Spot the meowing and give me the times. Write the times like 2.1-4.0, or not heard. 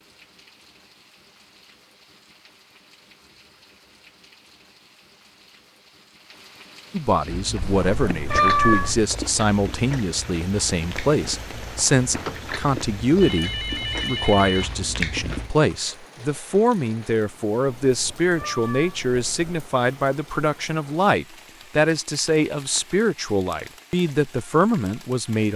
7.6-9.1, 17.9-19.7.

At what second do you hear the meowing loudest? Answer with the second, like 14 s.
9 s.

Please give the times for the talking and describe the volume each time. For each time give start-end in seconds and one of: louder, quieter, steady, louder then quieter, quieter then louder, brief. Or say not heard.
6.9-25.5 steady.